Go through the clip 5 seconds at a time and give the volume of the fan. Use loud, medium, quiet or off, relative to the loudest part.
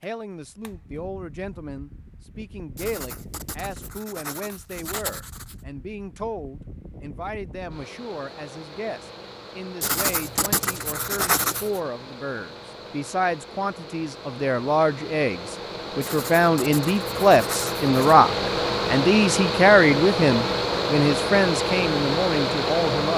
quiet, quiet, quiet, loud, loud.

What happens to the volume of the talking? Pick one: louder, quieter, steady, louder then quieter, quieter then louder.
louder.